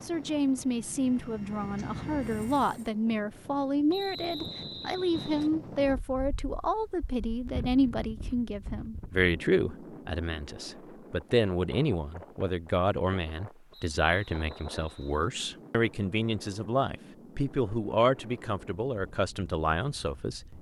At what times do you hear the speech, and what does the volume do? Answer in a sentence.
The speech can be heard from 0.0 to 20.5 s, at a steady volume.